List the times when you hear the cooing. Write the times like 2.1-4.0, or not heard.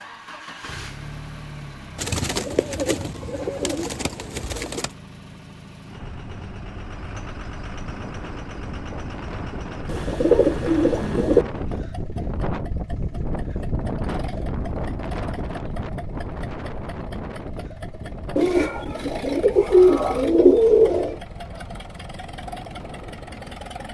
1.9-4.9, 9.8-11.4, 18.4-21.2.